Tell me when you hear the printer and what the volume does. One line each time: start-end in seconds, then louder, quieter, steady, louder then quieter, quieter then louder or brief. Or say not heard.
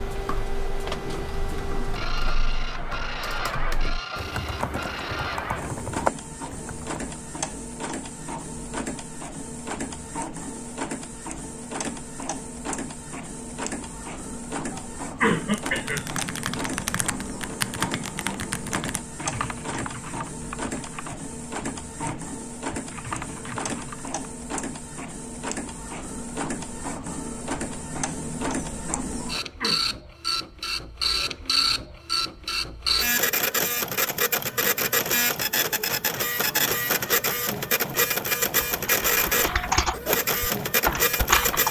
0.0-41.6 louder.